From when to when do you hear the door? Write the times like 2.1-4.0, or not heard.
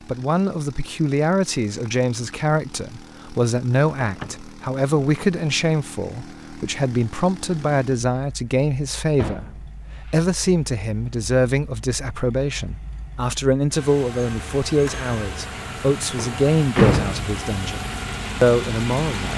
4.0-4.5, 9.2-10.2, 15.6-17.4.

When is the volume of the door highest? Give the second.
17 s.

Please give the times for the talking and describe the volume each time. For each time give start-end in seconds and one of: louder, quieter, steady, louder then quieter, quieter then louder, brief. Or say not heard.
0.1-9.4 steady
10.1-19.3 steady.